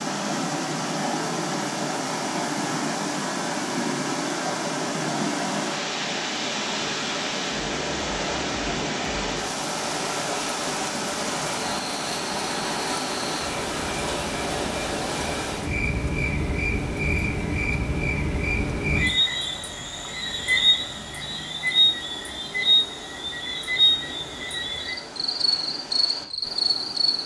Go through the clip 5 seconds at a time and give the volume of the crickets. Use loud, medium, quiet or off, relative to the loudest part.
quiet, quiet, quiet, loud, loud, loud.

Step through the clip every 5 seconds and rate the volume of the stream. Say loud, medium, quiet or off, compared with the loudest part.
loud, loud, loud, medium, quiet, quiet.